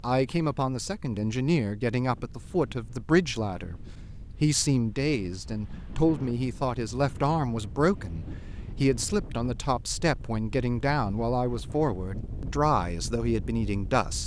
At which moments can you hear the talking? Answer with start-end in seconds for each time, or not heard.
0.0-14.2.